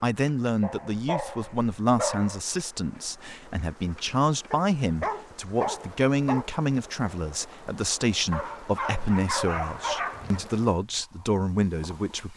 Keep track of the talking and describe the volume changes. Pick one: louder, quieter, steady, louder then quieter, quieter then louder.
steady.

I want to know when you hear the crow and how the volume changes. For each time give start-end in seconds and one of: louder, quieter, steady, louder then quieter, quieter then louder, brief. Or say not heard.
not heard.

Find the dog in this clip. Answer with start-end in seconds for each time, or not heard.
0.6-2.4, 4.5-6.5, 8.3-10.4.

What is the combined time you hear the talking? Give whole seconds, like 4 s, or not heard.
12 s.